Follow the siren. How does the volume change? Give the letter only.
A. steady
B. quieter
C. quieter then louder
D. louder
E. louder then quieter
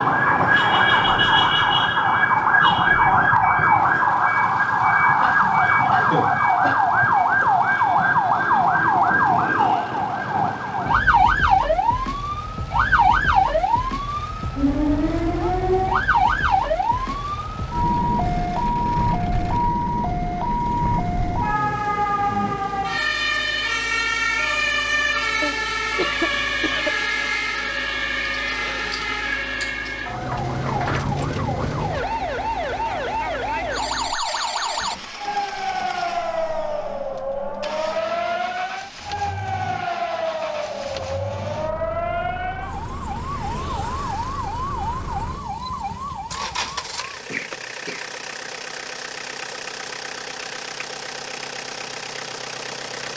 B.